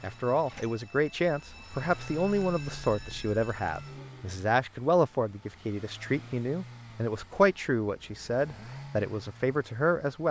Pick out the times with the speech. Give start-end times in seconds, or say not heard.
0.0-10.2.